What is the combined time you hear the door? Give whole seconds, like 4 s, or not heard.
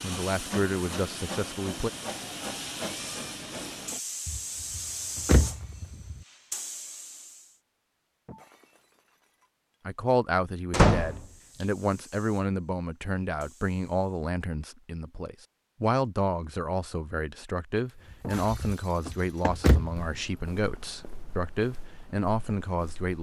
4 s.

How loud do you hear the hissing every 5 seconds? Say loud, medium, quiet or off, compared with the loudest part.
loud, loud, quiet, off, off.